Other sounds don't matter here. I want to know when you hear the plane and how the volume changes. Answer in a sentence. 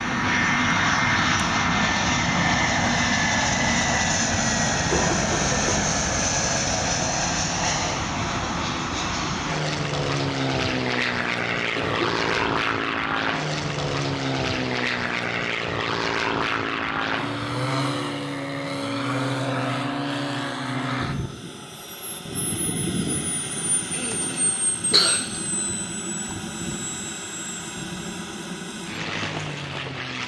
The plane can be heard from 0.0 to 30.2 s, getting quieter.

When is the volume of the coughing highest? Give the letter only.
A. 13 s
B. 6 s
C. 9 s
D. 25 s
D.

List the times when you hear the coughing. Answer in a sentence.
You can hear the coughing from 4.7 to 5.8 s, from 11.8 to 12.5 s and from 23.9 to 25.2 s.